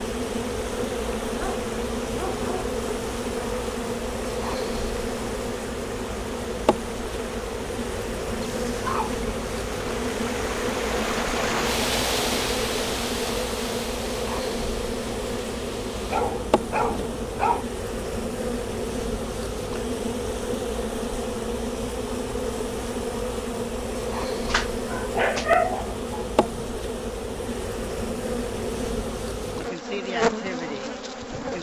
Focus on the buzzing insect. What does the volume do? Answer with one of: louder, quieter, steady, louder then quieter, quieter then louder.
steady.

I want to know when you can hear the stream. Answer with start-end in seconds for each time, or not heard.
0.0-16.3.